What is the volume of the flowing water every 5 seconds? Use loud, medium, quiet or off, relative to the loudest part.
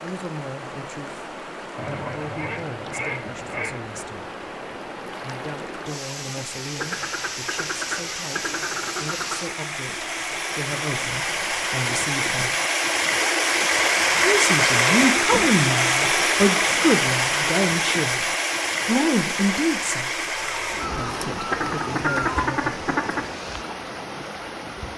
quiet, medium, loud, loud, medium.